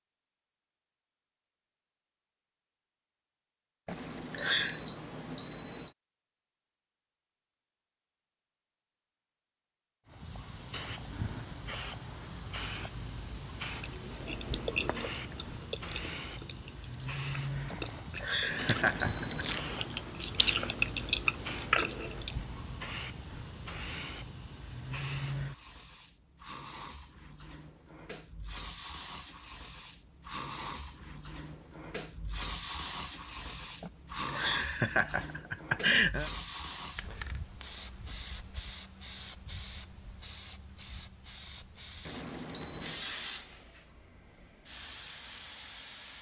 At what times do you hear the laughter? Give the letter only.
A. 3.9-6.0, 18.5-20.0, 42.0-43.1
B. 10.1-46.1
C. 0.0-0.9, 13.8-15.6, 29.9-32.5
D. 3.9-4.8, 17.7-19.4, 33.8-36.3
D.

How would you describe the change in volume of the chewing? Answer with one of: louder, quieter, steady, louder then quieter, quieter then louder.
quieter then louder.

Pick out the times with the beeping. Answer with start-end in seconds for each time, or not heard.
3.9-6.0, 18.5-20.0, 42.0-43.1.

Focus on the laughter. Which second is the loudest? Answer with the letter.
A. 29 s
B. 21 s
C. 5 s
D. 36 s
D.